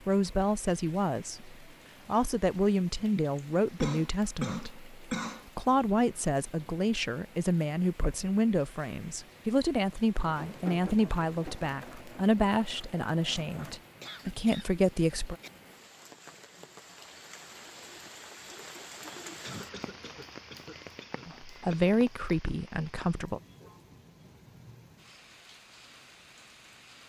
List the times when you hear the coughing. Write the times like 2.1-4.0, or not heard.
3.4-5.5, 14.0-15.5, 19.4-22.0.